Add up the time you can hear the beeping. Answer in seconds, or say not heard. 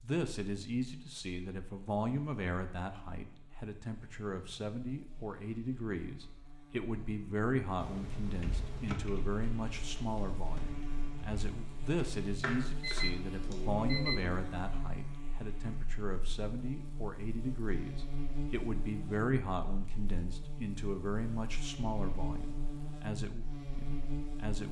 2 s.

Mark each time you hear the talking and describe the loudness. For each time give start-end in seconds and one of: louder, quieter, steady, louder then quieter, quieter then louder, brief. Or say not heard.
0.0-24.6 steady.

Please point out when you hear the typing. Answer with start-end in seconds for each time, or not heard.
7.8-13.8.